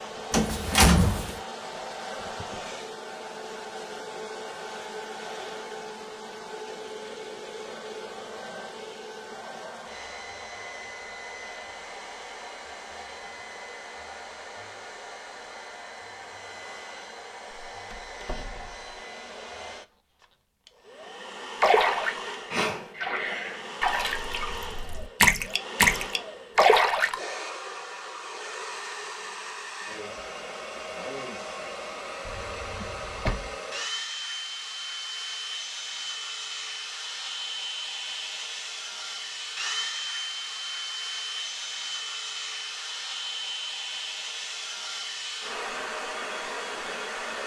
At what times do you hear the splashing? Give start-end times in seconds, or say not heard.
21.6-27.2.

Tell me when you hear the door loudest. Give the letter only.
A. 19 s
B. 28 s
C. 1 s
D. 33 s
C.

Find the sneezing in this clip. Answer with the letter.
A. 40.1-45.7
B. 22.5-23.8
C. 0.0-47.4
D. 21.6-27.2
B.